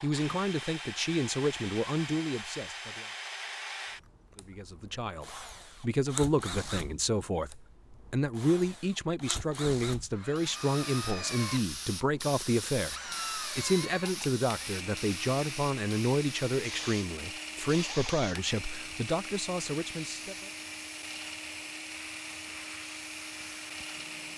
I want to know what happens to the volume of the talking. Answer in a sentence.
The loudness of the talking stays about the same.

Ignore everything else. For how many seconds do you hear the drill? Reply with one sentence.
The drill can be heard for 24 seconds in total.